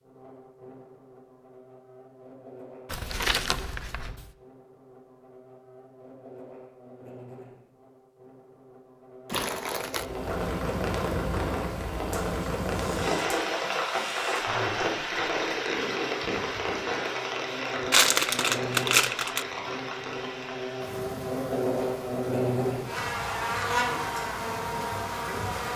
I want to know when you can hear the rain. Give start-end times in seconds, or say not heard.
9.9-25.7.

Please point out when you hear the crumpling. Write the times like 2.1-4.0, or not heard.
2.9-4.3, 9.2-10.1, 17.9-19.4.